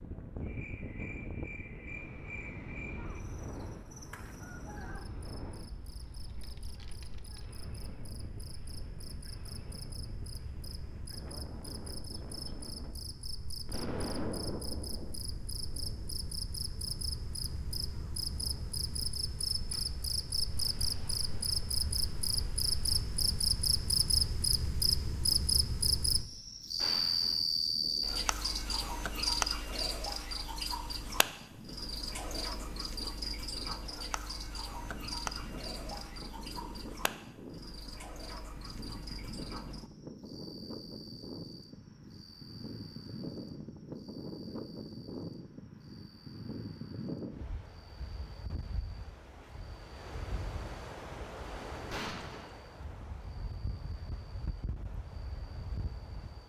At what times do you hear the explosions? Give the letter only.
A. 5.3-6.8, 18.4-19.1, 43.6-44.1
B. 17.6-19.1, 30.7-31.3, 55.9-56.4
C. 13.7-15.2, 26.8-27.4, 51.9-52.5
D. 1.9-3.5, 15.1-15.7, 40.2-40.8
C.